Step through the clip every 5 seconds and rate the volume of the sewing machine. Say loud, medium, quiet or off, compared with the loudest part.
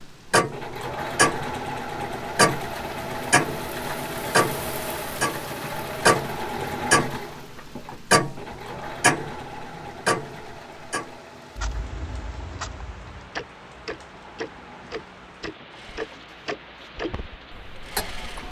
loud, loud, quiet, quiet.